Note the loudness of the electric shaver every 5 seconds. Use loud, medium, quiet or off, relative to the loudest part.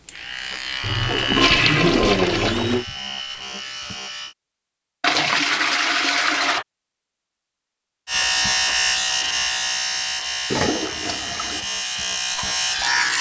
medium, loud, loud.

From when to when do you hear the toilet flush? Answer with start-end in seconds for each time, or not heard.
0.8-2.9, 5.0-6.7, 10.5-11.7.